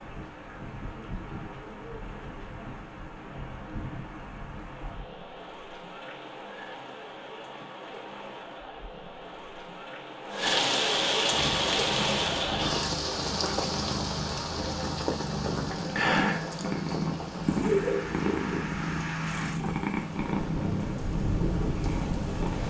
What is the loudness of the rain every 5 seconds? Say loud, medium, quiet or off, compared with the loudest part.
quiet, quiet, loud, medium, medium.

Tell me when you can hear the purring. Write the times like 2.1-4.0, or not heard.
11.3-22.6.